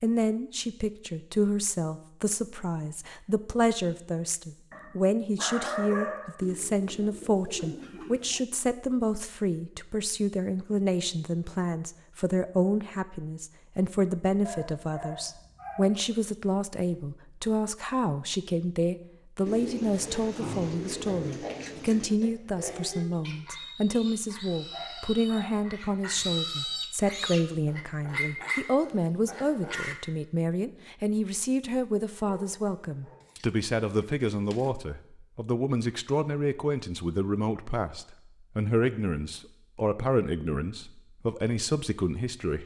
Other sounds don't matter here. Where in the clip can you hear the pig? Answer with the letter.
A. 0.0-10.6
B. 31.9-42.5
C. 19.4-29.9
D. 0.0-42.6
C.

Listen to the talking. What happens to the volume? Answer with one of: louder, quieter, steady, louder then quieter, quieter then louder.
steady.